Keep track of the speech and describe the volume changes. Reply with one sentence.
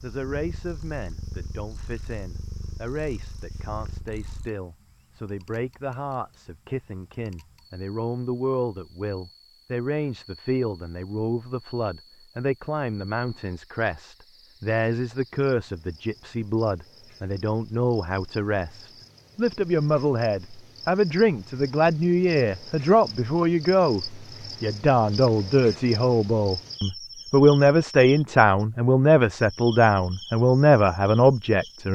The volume of the speech goes up.